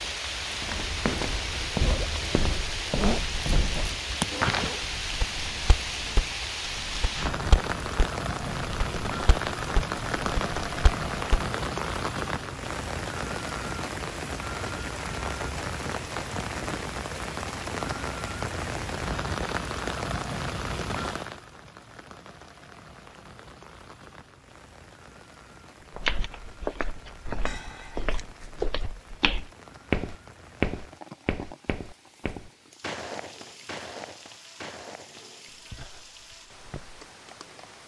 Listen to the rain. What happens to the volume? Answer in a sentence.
The loudness of the rain goes down.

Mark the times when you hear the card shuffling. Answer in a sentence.
You can hear the card shuffling from 27.4 to 28.5 s.